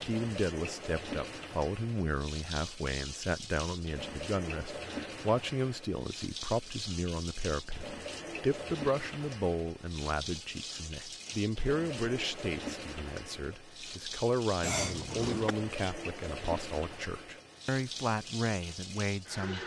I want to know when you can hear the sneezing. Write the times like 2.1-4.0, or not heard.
14.6-15.6.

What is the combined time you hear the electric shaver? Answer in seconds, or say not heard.
not heard.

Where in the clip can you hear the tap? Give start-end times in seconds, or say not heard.
0.0-19.6.